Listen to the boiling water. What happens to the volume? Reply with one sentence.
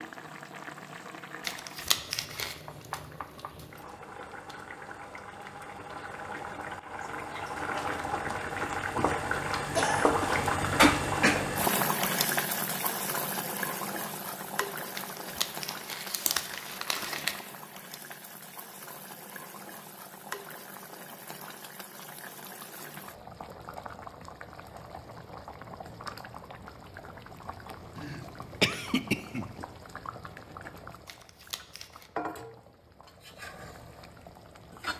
The volume of the boiling water goes up, then down.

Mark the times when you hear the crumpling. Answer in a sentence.
You can hear the crumpling from 1.4 to 2.5 s, from 14.9 to 17.4 s and from 31.1 to 32.1 s.